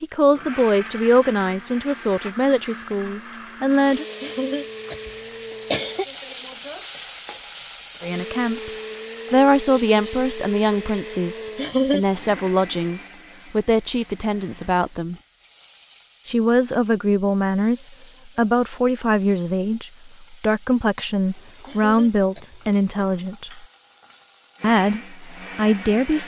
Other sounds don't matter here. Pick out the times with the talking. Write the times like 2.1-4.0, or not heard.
0.0-4.0, 8.0-8.7, 9.3-15.2, 16.2-23.6, 24.6-26.2.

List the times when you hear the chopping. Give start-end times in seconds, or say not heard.
not heard.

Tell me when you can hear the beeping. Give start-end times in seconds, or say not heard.
not heard.